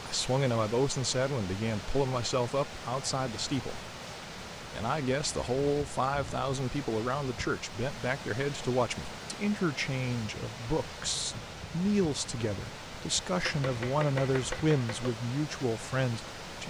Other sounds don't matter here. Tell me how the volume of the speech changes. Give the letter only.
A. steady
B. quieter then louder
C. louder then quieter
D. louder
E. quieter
A.